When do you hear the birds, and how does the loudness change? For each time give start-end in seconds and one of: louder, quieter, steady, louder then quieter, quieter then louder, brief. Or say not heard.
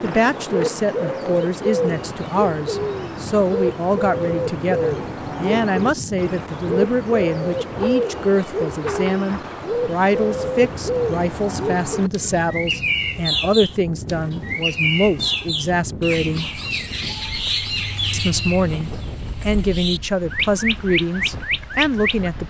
0.0-22.4 steady.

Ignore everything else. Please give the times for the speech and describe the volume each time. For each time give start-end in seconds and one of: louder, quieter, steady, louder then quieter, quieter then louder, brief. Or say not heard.
0.0-16.6 steady
18.1-22.4 steady.